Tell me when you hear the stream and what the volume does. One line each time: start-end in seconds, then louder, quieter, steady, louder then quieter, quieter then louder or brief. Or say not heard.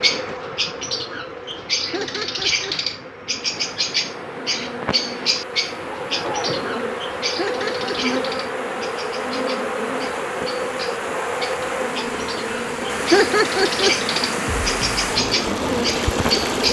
3.3-16.6 louder.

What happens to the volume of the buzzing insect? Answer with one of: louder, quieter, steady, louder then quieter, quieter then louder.
louder.